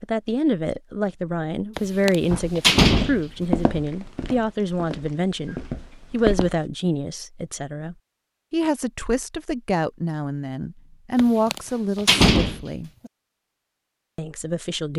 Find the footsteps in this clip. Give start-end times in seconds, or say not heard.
2.3-6.6.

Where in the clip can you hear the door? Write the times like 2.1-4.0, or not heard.
1.8-3.6, 11.2-13.1.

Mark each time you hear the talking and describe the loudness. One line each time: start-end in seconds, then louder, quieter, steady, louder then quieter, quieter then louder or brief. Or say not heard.
0.0-12.9 steady
14.2-14.9 brief.